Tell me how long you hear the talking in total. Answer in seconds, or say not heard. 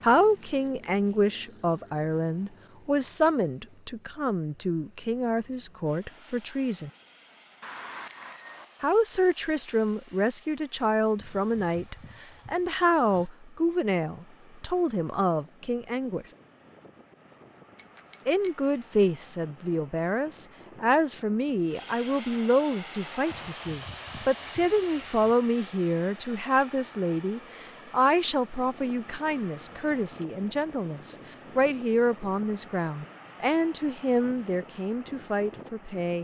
32 s.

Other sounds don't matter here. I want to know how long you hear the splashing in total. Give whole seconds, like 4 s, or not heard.
not heard.